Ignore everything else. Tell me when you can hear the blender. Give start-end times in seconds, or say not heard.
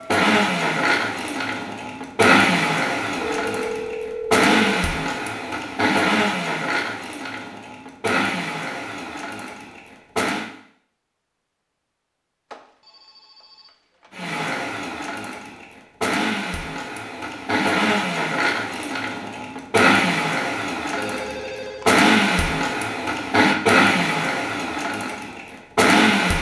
0.0-10.5, 14.1-26.3.